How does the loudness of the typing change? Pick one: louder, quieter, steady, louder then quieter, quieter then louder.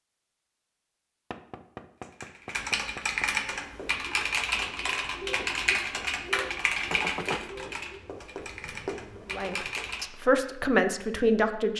quieter.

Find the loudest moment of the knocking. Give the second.
7 s.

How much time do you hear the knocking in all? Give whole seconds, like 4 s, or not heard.
3 s.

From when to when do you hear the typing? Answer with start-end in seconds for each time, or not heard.
2.0-10.1.